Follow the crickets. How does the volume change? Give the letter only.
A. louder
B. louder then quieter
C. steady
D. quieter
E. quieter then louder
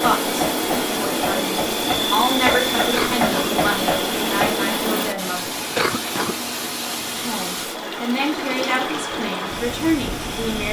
D.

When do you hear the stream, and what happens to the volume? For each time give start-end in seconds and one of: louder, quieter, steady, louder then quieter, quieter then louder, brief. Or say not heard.
0.0-10.6 steady.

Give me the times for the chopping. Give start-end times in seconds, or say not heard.
0.0-4.7.